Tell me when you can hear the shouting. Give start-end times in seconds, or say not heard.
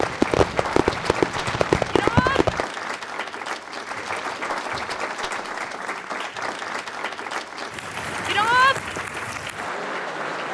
1.9-2.4, 8.2-8.8.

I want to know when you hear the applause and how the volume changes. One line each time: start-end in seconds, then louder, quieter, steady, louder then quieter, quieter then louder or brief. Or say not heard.
0.0-10.4 steady.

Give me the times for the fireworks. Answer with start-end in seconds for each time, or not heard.
0.0-2.6.